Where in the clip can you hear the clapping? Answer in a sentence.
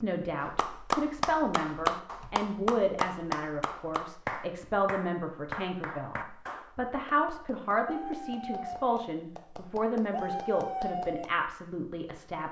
You can hear the clapping from 0.5 to 11.3 s.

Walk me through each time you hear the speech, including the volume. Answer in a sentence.
You can hear the speech from 0.0 to 12.4 s, at a steady volume.